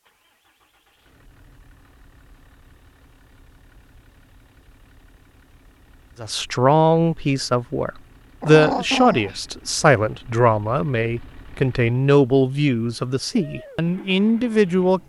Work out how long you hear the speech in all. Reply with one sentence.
You can hear the speech for 9 seconds altogether.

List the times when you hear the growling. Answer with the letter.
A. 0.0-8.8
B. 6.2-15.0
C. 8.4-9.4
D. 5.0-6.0
C.